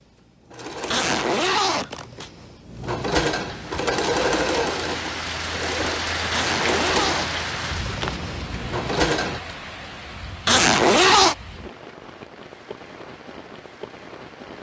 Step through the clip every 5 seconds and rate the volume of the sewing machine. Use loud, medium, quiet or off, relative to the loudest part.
loud, loud, off.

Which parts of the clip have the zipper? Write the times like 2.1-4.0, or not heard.
0.9-2.3, 6.3-8.2, 10.4-11.3.